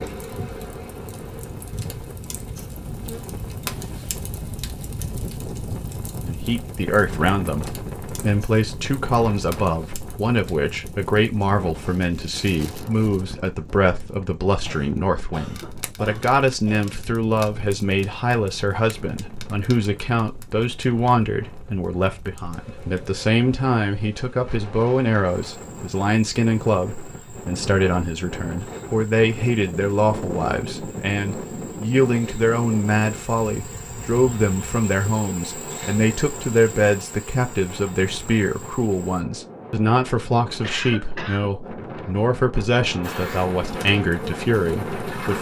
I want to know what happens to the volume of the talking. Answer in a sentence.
The volume of the talking stays about the same.